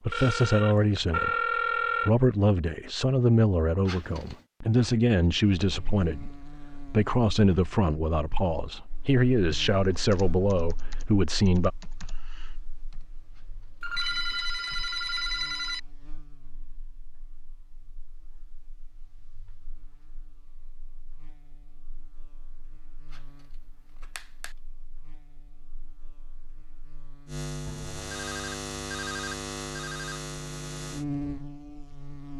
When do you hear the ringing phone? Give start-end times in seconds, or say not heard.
0.1-2.1, 13.8-15.8, 27.6-30.2.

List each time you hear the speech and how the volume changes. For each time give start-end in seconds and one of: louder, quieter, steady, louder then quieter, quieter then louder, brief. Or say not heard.
0.0-11.7 steady.